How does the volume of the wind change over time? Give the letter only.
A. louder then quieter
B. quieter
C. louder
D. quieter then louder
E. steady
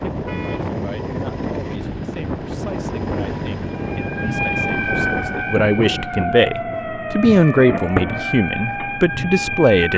E.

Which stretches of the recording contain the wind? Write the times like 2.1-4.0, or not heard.
0.0-6.4.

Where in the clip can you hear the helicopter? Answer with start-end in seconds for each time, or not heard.
0.0-5.5.